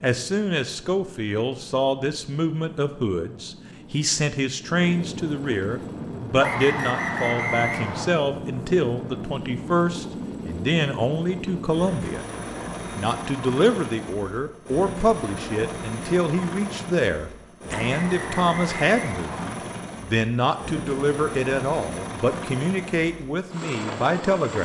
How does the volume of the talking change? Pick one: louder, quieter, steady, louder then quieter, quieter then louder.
steady.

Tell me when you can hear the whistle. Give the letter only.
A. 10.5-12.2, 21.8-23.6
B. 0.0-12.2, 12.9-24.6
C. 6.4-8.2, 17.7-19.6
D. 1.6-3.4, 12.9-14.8
C.